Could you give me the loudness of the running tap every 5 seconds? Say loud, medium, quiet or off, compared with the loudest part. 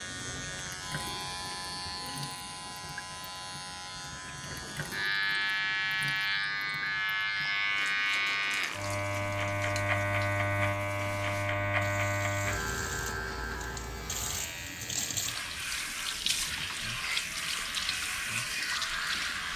quiet, quiet, medium, loud.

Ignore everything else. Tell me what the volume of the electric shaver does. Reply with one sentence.
The loudness of the electric shaver goes up, then down.